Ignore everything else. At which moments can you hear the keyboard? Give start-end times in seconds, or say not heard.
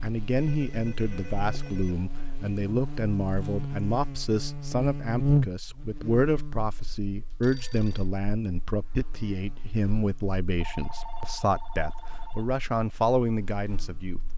not heard.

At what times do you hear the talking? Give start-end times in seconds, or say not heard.
0.0-14.3.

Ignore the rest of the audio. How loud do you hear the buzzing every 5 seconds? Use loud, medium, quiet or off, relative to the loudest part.
medium, loud, quiet.